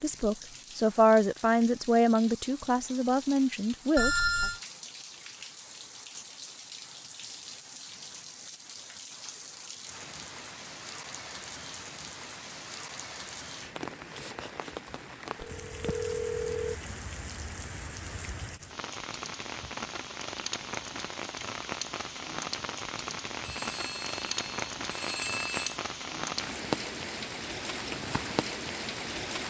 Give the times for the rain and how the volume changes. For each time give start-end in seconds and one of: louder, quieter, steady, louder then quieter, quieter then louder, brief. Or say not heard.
0.0-29.4 louder.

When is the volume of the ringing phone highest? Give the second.
4 s.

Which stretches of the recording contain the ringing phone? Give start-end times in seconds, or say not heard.
4.0-4.6, 15.3-16.8, 23.4-25.8.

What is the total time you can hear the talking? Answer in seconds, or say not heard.
4 s.